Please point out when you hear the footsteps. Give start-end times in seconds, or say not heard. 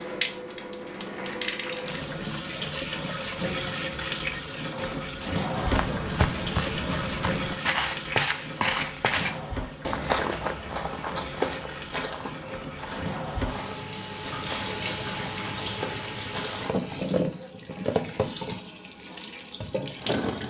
5.5-17.2.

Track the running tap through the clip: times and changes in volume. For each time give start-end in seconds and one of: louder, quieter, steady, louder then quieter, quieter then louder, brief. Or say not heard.
0.0-20.4 quieter then louder.